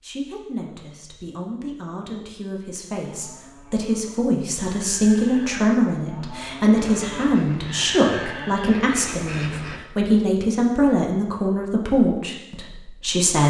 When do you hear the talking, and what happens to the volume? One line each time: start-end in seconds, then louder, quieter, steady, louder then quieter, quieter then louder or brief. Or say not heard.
0.0-13.4 louder.